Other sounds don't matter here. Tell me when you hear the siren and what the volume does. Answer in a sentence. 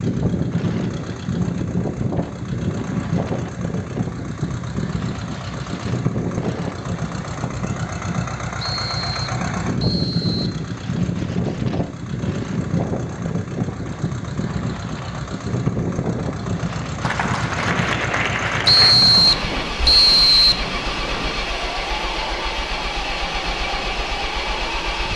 The siren can't be heard in this clip.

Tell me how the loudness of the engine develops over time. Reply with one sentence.
The volume of the engine stays about the same.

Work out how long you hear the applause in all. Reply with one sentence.
The applause can be heard for 2 seconds in total.